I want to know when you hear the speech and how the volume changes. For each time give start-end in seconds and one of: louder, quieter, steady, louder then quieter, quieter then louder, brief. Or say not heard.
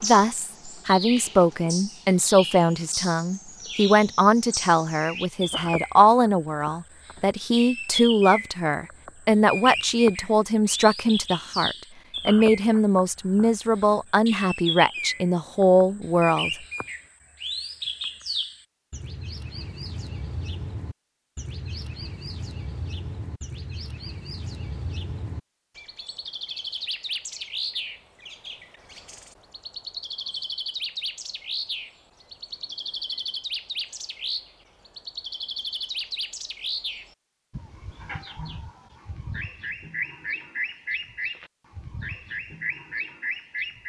0.0-16.5 steady.